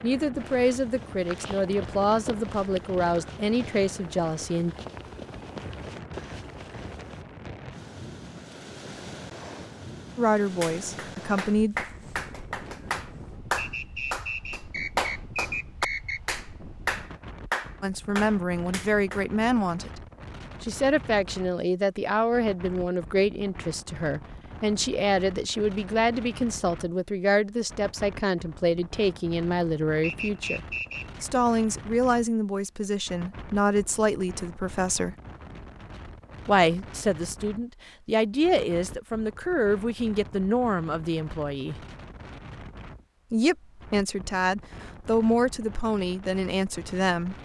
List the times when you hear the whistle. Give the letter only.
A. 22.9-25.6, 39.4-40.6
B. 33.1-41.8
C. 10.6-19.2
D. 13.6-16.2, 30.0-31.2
D.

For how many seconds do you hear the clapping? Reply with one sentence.
You can hear the clapping for 9 seconds altogether.